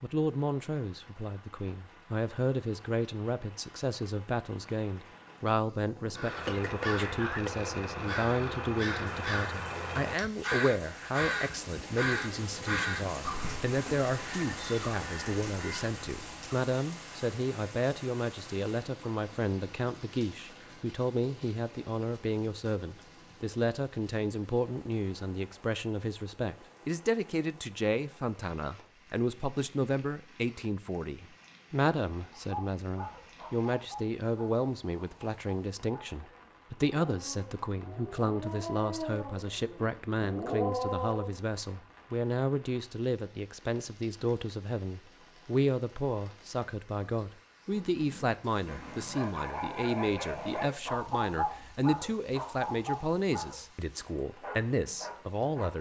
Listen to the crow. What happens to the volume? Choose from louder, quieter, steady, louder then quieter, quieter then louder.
quieter.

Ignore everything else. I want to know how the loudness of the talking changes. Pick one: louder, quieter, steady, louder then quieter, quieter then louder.
steady.